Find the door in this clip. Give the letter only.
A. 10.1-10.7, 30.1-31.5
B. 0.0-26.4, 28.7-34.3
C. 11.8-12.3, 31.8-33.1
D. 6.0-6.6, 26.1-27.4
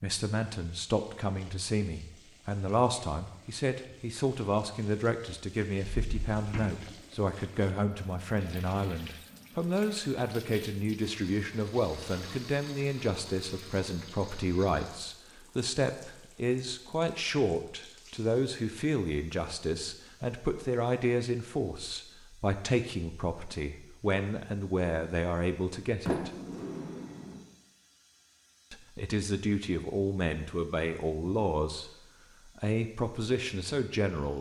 D.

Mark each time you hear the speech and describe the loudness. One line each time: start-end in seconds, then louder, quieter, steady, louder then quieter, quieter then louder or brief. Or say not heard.
0.0-26.4 steady
28.7-34.3 steady.